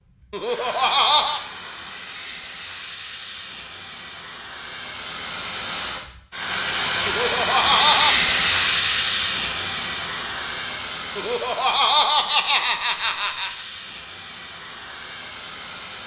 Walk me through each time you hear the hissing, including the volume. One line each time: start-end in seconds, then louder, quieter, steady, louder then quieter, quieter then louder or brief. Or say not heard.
0.0-16.0 louder then quieter.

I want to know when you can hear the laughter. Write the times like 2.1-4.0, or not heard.
0.3-1.4, 7.0-8.2, 11.2-13.5.